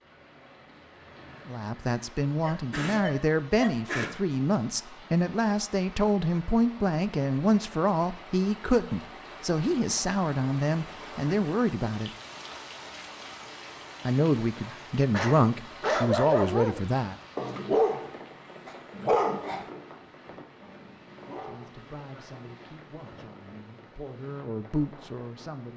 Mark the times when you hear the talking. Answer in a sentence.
The talking can be heard from 1.4 to 12.1 s, from 14.1 to 17.1 s and from 21.4 to 25.7 s.